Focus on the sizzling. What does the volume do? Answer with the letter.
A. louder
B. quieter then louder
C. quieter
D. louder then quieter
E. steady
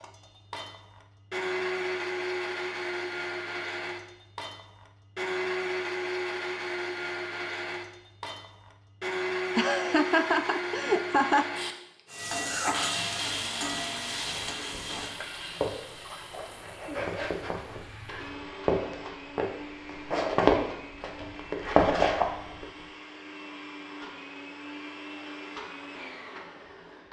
C.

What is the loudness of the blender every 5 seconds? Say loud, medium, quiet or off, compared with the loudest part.
loud, loud, loud, medium, medium, medium.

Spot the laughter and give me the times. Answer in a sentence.
You can hear the laughter from 9.6 to 11.4 s.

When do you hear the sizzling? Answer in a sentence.
The sizzling can be heard from 12.1 to 18.4 s.